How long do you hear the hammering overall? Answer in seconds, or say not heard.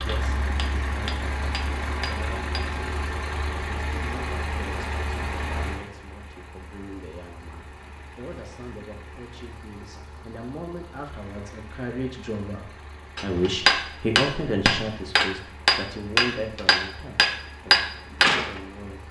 8 s.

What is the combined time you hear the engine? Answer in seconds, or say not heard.
19 s.